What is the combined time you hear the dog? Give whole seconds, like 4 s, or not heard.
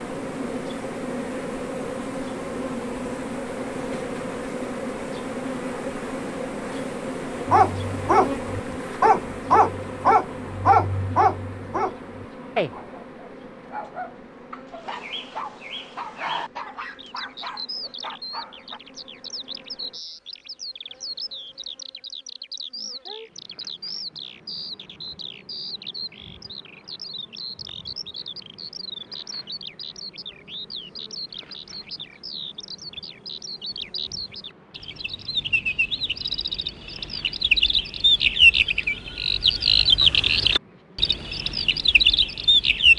11 s.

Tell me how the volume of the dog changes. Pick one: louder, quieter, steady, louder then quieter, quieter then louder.
quieter.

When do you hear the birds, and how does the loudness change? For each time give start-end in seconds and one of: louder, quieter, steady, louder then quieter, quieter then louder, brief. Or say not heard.
14.8-42.9 louder.